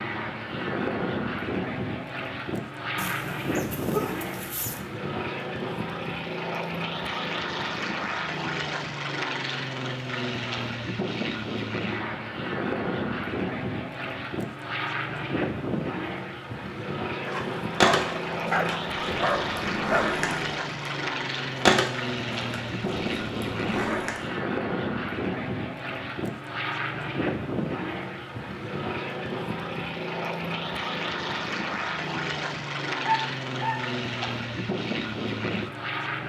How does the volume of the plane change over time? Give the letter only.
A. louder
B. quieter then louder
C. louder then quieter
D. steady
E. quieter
D.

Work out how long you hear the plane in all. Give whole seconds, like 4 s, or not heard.
36 s.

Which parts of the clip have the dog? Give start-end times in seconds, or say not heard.
3.0-4.8, 17.2-20.2, 33.0-34.2.